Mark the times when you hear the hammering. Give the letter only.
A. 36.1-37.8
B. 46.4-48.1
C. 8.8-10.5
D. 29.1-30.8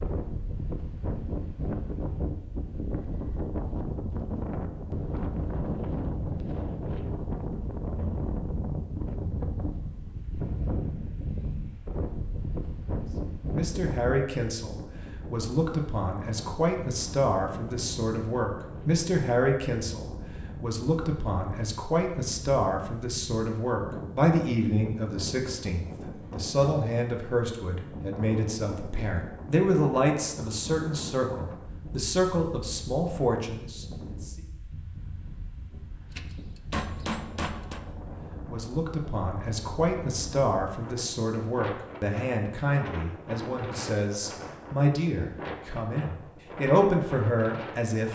A.